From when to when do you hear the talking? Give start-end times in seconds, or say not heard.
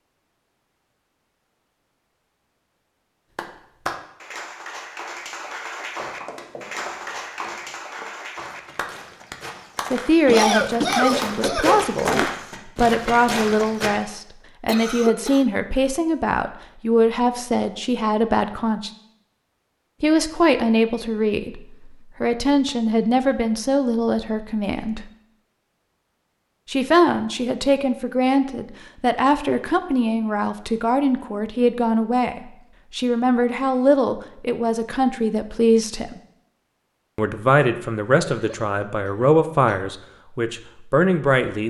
9.9-18.9, 20.0-25.1, 26.6-36.2, 37.1-41.6.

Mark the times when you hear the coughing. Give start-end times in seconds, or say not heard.
10.2-12.3, 14.7-15.4, 38.3-39.9.